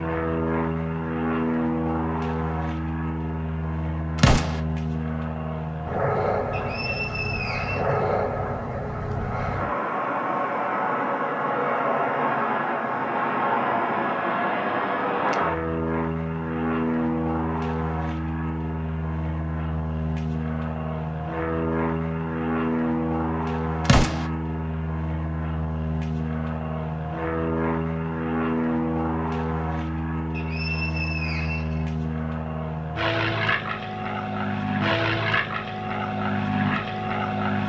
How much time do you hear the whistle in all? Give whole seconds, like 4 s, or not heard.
3 s.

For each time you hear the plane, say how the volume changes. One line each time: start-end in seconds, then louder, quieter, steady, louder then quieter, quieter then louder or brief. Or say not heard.
0.0-37.6 steady.